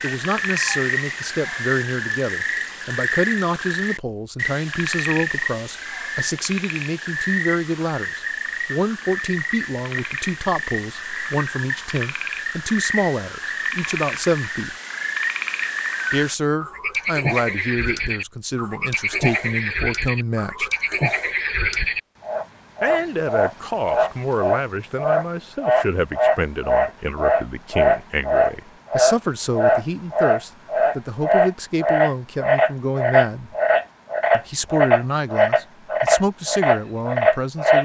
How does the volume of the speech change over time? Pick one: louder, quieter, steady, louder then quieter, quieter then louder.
steady.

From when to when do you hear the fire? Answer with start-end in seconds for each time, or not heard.
not heard.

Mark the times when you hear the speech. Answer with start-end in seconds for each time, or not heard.
0.0-14.8, 16.1-20.7, 22.8-33.5, 34.3-37.8.